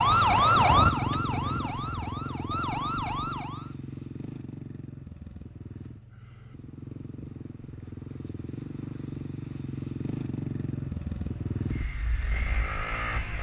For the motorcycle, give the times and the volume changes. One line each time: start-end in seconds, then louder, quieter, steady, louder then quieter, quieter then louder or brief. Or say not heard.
0.0-13.3 quieter then louder.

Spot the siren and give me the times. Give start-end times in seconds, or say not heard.
0.0-3.8.